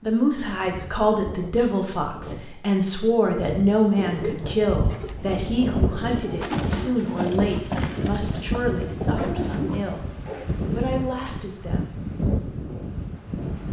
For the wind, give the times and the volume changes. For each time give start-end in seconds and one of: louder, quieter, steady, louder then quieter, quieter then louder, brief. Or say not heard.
0.0-13.6 louder.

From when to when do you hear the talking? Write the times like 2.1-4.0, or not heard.
0.0-11.9.